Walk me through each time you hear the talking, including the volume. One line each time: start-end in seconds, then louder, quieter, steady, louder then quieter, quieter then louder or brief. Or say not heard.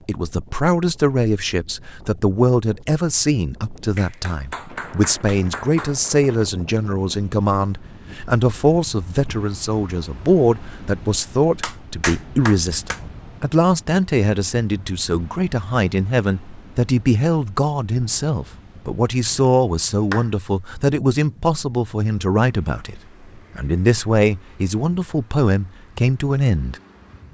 0.0-26.8 steady.